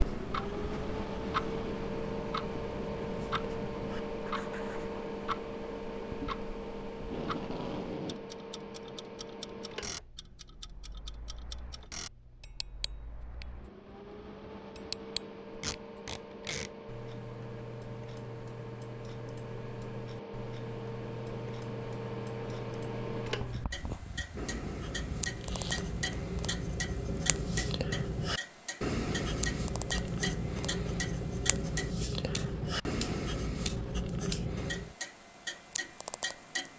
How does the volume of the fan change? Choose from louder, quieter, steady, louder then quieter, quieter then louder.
quieter then louder.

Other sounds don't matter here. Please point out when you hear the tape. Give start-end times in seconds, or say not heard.
7.0-8.2, 15.6-16.7, 25.4-25.9.